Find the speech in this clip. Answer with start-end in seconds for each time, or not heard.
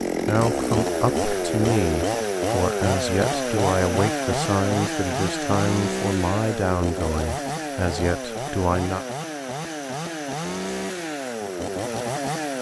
0.2-9.1.